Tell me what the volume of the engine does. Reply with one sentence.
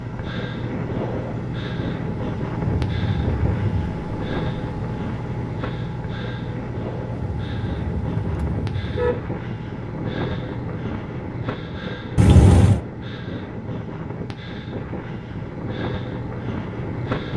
The volume of the engine goes down.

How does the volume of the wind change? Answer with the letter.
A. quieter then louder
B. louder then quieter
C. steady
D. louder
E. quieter
C.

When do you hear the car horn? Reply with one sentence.
You can hear the car horn from 2.6 to 3.9 s, from 7.2 to 9.1 s and from 12.2 to 12.8 s.